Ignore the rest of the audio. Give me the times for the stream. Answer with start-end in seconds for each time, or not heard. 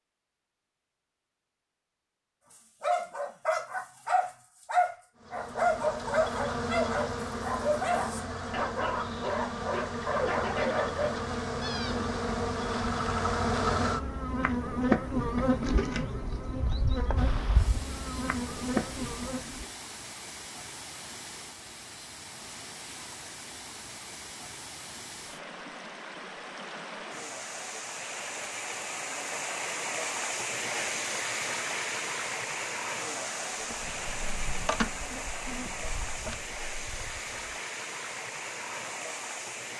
17.1-39.7.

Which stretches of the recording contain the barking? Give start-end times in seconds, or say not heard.
2.5-11.1.